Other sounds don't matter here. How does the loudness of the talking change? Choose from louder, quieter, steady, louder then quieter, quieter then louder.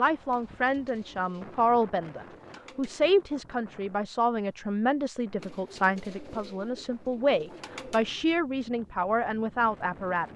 steady.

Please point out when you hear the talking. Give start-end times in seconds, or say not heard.
0.0-10.2.